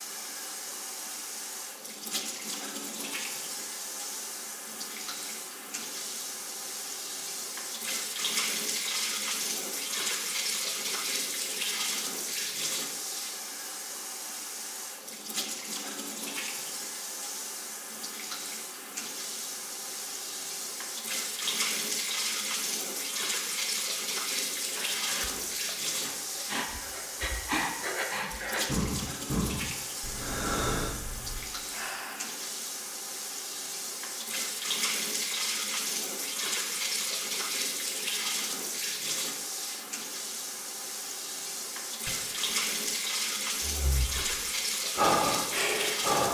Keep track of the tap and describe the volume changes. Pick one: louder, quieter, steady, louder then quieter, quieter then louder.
steady.